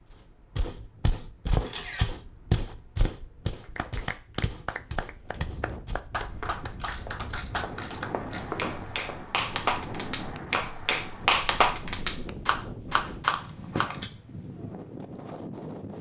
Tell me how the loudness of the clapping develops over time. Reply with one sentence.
The loudness of the clapping goes up.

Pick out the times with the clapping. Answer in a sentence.
You can hear the clapping from 3.6 to 13.9 s.